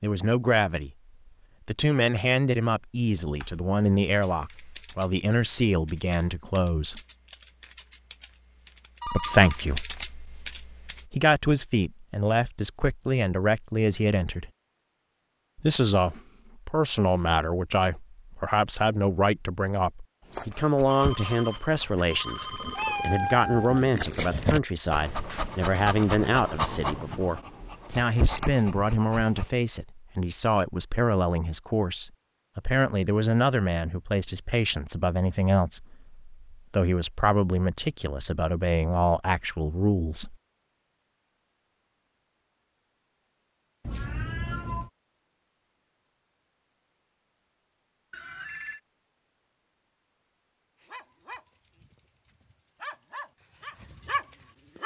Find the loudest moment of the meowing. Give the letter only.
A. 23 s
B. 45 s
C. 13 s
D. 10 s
A.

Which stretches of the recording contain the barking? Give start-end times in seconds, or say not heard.
20.3-29.5, 50.8-54.8.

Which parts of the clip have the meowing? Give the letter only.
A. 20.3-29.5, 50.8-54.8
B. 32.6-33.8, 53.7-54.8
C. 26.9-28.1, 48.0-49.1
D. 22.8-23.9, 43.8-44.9
D.